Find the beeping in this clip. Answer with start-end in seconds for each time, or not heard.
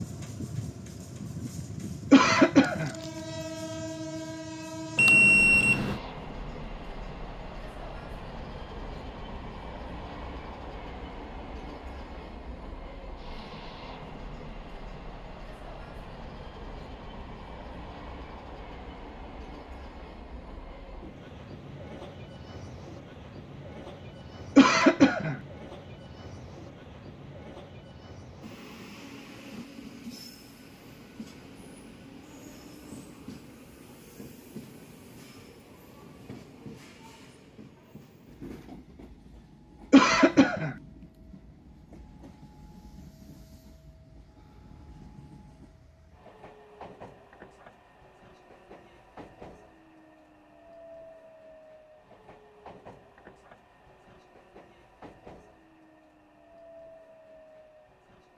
5.0-6.0.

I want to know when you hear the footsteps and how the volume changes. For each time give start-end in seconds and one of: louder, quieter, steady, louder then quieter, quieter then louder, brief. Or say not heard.
not heard.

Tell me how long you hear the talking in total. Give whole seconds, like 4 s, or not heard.
not heard.